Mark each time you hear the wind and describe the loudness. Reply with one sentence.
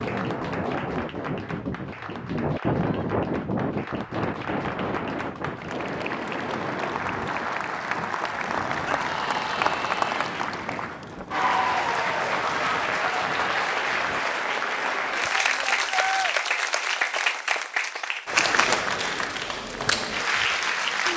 You can hear the wind from 0.0 to 14.2 s, getting quieter.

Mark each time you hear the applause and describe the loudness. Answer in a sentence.
The applause can be heard from 0.0 to 21.1 s, getting louder.